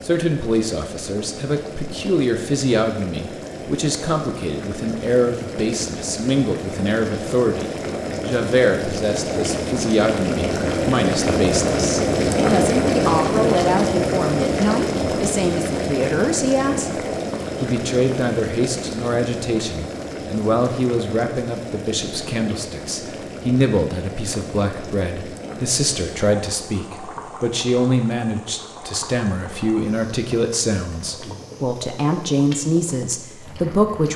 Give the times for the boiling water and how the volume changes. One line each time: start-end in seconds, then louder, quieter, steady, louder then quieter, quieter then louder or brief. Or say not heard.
0.0-34.1 louder then quieter.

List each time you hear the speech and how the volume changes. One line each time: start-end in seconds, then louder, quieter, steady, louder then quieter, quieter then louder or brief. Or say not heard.
0.0-17.0 steady
17.6-34.1 steady.